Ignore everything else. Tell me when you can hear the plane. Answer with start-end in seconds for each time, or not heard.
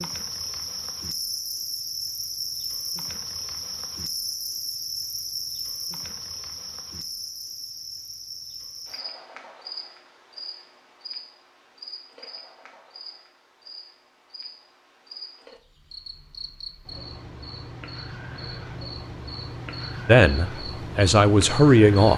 not heard.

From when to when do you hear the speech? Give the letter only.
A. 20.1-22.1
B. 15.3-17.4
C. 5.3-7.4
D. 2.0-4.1
A.